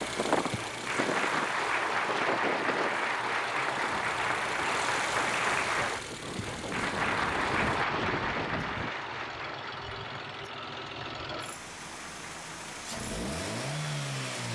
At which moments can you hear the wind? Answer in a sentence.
You can hear the wind from 0.0 to 8.9 s.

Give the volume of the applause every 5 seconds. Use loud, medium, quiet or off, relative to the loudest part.
loud, loud, quiet.